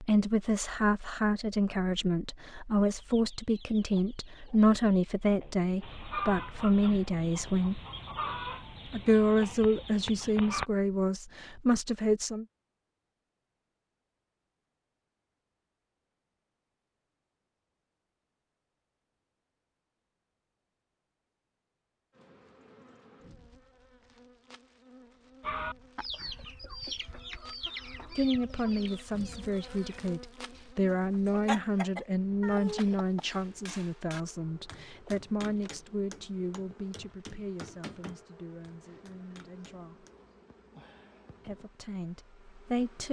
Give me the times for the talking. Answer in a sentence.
You can hear the talking from 0.0 to 7.8 s, from 8.8 to 12.4 s, from 28.1 to 40.0 s and from 41.5 to 43.0 s.